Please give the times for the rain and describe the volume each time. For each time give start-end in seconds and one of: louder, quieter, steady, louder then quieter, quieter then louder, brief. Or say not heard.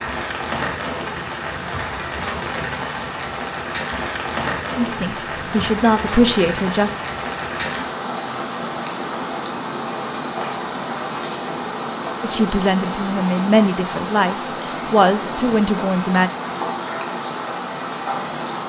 0.0-18.6 steady.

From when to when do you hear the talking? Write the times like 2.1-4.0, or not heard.
4.8-6.9, 12.2-16.3.